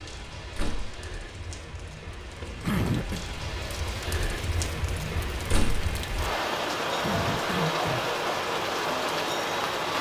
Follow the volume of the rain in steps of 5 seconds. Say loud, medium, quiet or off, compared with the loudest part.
medium, loud.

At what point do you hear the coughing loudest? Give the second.
3 s.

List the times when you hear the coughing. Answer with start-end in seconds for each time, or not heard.
2.6-3.2, 7.0-8.1.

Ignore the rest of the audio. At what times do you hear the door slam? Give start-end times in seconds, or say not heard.
0.6-1.0, 5.5-5.9.